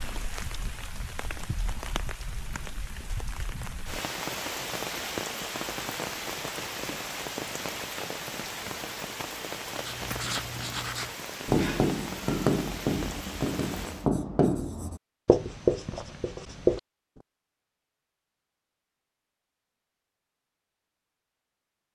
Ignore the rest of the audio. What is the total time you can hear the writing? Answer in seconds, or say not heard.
7 s.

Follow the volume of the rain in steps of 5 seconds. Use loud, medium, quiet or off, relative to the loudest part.
loud, loud, loud, off, off.